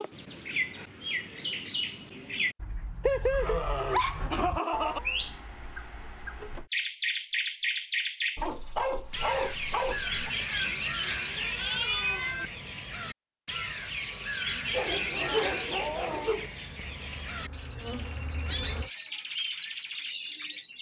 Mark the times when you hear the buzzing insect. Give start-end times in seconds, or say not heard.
16.9-18.9.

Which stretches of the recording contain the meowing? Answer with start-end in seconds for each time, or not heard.
4.7-6.7, 10.4-12.5.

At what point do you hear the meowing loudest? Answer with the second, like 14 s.
12 s.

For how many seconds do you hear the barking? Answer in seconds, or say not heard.
6 s.